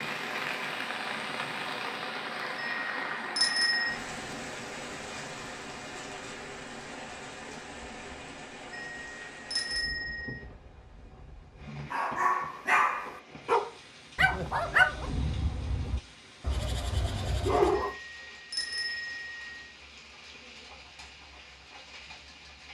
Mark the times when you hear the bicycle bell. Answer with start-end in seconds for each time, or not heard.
2.5-4.0, 8.7-10.3, 17.8-19.4.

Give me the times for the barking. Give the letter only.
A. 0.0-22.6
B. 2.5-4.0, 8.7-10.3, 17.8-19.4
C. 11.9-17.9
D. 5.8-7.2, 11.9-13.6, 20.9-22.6
C.